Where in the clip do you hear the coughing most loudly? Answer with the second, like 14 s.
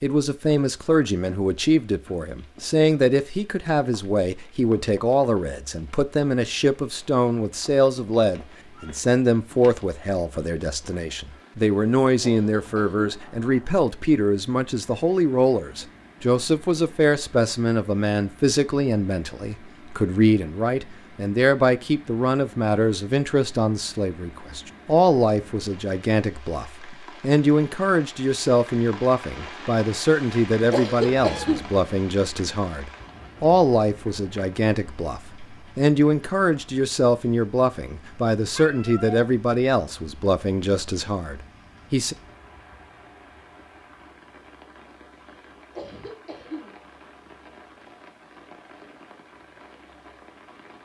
31 s.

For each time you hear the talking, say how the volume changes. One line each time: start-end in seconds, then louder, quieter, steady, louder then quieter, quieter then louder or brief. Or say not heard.
0.0-42.1 steady.